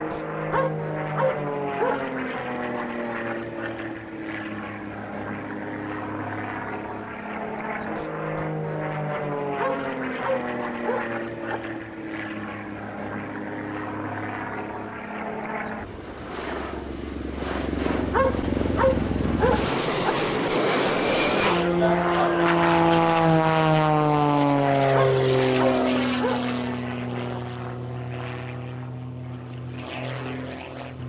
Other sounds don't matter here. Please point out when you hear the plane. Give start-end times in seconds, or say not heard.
0.0-31.0.